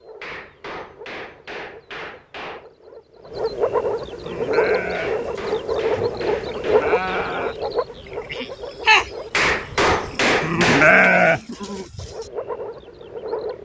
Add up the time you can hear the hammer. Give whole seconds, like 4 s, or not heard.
7 s.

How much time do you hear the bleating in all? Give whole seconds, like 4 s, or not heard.
8 s.